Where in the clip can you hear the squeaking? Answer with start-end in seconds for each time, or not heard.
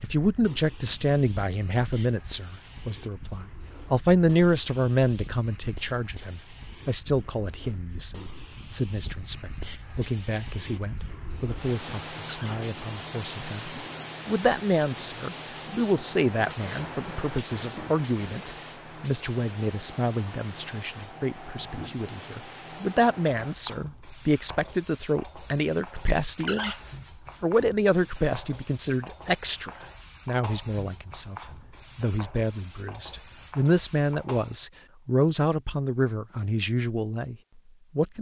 12.2-12.6, 26.4-26.8.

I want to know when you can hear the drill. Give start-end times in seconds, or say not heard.
not heard.